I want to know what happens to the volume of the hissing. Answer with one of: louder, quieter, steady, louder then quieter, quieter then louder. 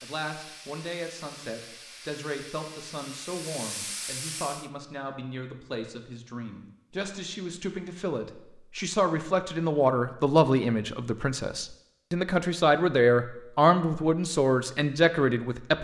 louder.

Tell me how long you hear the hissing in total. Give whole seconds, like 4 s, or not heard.
5 s.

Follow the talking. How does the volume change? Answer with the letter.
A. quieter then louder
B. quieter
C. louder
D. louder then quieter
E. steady
C.